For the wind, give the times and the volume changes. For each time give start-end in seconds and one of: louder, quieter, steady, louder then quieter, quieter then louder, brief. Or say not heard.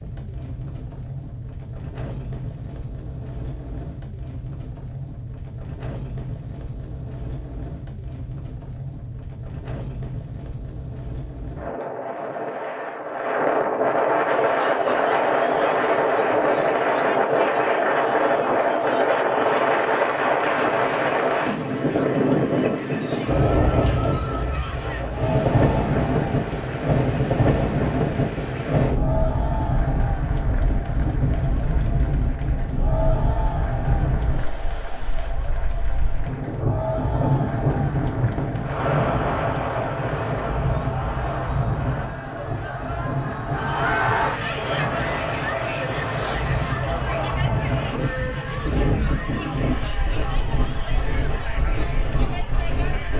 0.0-53.1 louder then quieter.